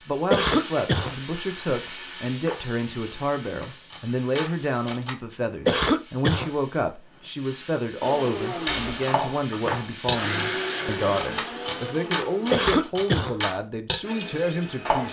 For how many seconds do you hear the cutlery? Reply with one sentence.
You can hear the cutlery for 9 seconds altogether.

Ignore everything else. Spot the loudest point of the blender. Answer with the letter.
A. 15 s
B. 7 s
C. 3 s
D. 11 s
D.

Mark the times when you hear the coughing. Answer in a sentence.
You can hear the coughing from 0.3 to 1.1 s, from 5.7 to 6.5 s and from 12.5 to 13.3 s.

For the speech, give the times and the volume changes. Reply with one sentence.
You can hear the speech from 0.1 to 15.0 s, at a steady volume.